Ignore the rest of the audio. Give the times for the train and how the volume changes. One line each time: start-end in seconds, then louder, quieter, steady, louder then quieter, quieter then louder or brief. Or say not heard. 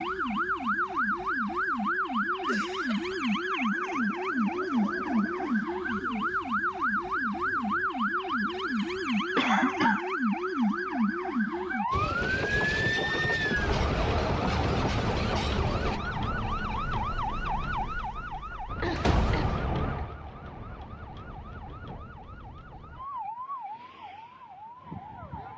11.9-16.0 steady.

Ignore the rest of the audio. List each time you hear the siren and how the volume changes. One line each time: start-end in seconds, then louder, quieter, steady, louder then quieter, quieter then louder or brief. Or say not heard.
0.0-25.5 quieter.